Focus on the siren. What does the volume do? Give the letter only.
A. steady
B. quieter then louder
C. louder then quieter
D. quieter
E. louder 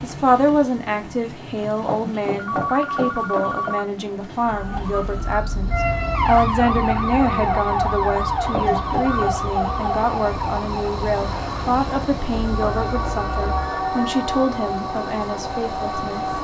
D.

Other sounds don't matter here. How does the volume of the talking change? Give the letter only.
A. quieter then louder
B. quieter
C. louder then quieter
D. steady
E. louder
D.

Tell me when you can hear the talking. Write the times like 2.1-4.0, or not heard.
0.0-16.3.